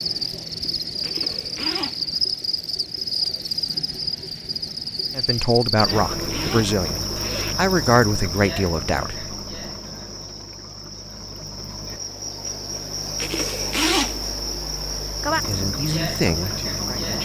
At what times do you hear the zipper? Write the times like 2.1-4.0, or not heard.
1.0-2.2, 5.8-7.5, 13.2-14.2.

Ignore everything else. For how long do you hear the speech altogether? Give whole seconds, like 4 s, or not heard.
6 s.